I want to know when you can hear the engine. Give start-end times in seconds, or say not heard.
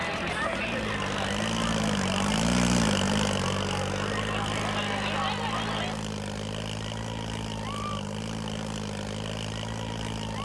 0.0-10.3.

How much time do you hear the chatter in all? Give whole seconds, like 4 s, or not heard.
6 s.